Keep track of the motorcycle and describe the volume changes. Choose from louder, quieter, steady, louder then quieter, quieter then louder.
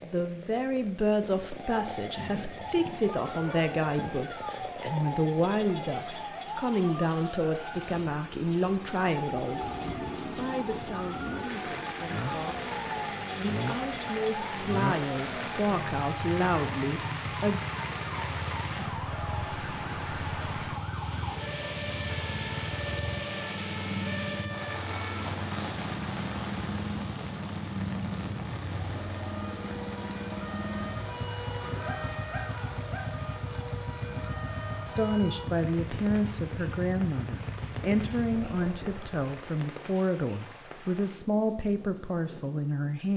steady.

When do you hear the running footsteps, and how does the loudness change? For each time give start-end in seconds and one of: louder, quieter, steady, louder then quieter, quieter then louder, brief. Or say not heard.
not heard.